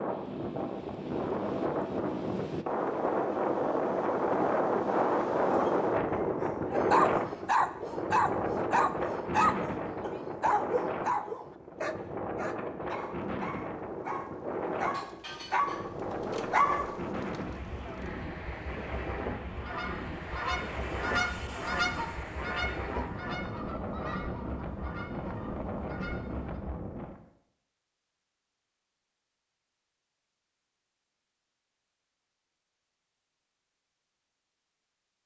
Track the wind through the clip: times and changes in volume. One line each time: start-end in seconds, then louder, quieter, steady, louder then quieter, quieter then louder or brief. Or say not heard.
0.0-27.2 quieter.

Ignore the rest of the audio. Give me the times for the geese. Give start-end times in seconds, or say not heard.
19.4-26.6.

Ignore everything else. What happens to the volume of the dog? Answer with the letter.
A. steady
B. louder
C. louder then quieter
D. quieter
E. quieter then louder
E.